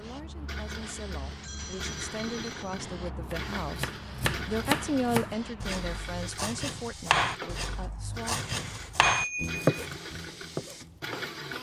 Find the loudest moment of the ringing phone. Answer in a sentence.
The loudest moment of the ringing phone is at 9 seconds.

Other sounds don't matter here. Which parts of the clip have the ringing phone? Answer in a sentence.
You can hear the ringing phone from 1.2 to 2.9 s and from 9.0 to 9.7 s.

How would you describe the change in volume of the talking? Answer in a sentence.
The loudness of the talking goes up, then down.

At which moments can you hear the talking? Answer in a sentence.
You can hear the talking from 0.0 to 8.4 s.